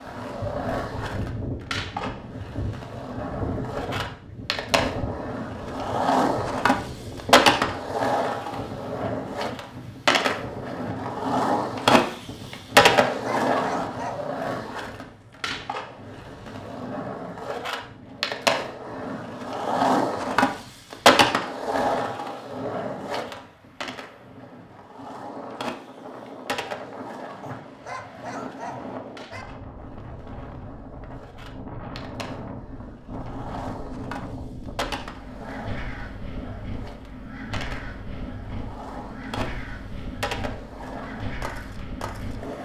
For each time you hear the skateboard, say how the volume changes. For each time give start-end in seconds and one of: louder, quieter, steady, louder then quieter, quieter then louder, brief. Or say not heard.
0.0-42.6 quieter.